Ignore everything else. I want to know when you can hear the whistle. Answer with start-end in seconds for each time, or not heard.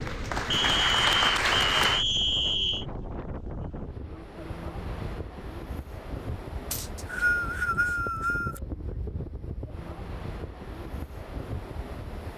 0.5-2.9, 6.7-8.6.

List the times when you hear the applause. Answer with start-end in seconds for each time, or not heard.
0.0-2.0.